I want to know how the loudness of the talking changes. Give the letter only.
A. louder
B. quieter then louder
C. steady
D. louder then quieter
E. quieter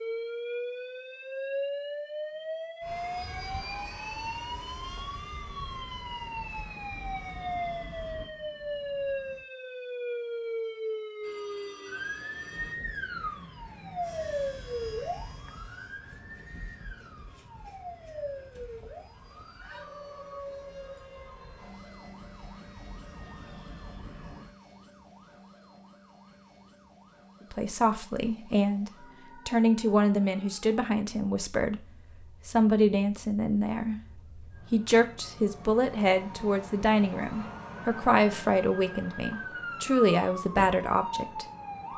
C.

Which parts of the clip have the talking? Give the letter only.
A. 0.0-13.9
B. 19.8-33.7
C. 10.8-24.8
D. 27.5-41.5
D.